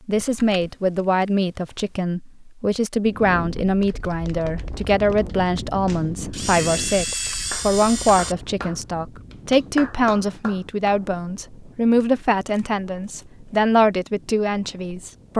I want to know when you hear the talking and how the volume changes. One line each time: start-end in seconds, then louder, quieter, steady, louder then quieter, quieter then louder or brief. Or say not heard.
0.1-15.3 steady.